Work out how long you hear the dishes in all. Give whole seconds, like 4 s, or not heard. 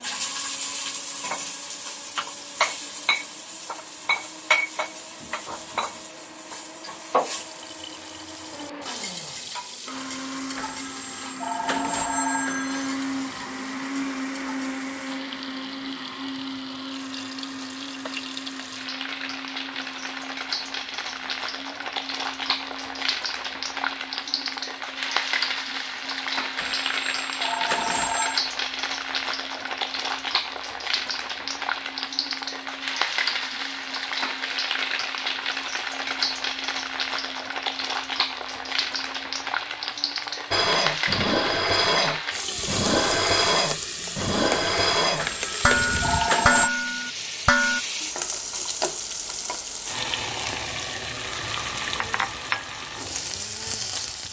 7 s.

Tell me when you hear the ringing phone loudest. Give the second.
46 s.